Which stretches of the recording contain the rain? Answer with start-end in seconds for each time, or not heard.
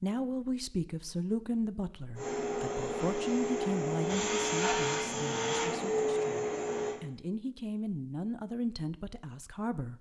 not heard.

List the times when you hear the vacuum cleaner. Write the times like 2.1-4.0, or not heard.
2.1-7.0.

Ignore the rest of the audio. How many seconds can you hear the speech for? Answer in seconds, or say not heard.
10 s.